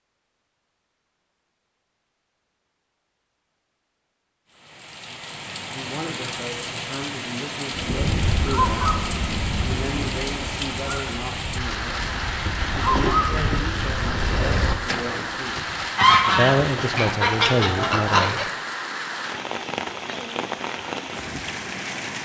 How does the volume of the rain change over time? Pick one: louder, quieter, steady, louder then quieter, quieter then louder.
steady.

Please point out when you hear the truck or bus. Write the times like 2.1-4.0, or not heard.
not heard.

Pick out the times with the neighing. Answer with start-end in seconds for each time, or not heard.
not heard.